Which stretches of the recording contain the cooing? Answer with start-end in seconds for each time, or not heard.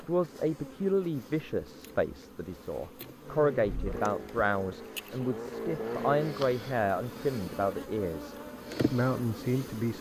not heard.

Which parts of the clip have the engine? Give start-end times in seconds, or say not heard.
3.2-6.5.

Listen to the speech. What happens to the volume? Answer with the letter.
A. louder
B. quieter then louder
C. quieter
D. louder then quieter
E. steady
E.